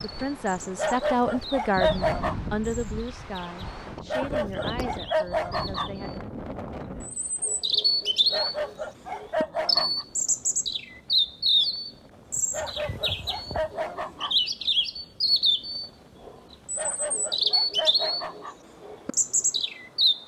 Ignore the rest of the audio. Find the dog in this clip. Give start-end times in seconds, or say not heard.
0.8-2.4, 4.0-5.9, 8.3-10.1, 12.5-14.3, 16.8-18.6.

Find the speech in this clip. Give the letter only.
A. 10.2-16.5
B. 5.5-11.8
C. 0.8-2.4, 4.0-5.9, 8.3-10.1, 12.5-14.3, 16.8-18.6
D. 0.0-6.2
D.